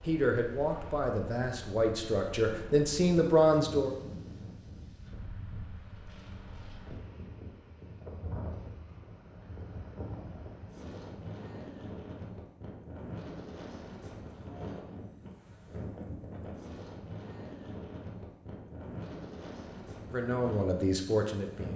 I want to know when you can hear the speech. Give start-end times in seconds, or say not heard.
0.0-4.0, 20.1-21.7.